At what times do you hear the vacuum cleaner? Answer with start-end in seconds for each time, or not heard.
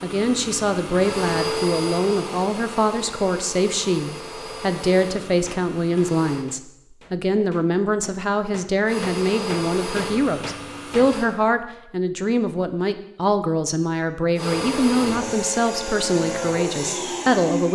0.0-6.5, 8.8-11.2, 14.3-17.6.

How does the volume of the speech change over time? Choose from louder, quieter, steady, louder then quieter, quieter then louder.
steady.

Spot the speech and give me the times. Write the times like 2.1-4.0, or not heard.
0.0-17.6.